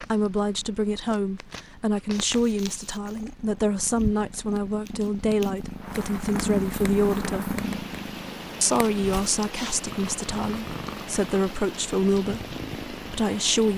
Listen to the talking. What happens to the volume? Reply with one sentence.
The loudness of the talking stays about the same.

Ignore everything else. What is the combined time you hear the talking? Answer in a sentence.
You can hear the talking for 13 seconds altogether.